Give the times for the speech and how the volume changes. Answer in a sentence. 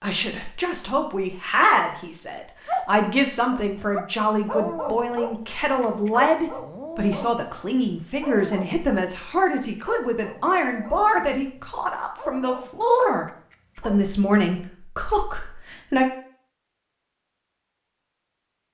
The speech can be heard from 0.0 to 16.1 s, at a steady volume.